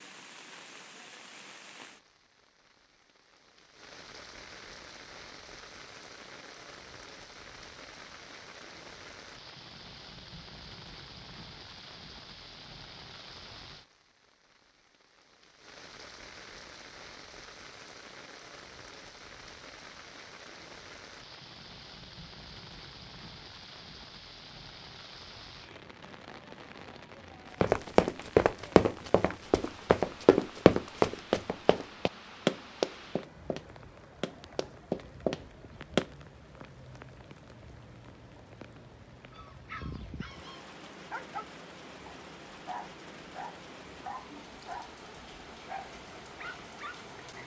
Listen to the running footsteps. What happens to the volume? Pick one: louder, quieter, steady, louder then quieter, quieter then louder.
quieter.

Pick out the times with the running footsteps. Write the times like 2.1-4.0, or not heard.
27.6-36.0.